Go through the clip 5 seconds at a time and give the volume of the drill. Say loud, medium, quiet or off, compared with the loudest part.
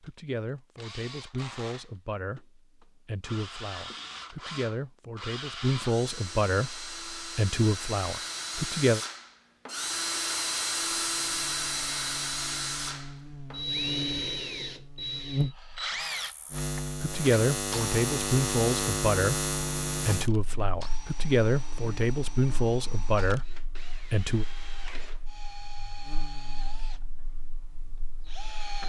medium, medium, loud, medium, quiet, quiet.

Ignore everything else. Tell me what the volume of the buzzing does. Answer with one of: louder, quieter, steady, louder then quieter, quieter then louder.
louder then quieter.